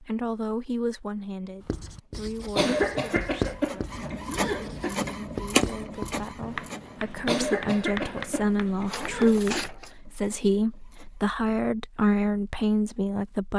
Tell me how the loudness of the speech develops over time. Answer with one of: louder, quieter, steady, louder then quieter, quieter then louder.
quieter then louder.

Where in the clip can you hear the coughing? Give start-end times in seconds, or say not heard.
2.5-5.0, 7.2-9.7.